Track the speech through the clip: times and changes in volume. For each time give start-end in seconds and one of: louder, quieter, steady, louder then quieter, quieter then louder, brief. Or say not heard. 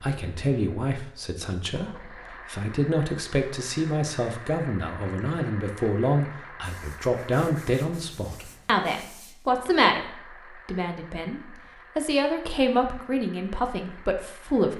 0.0-14.7 steady.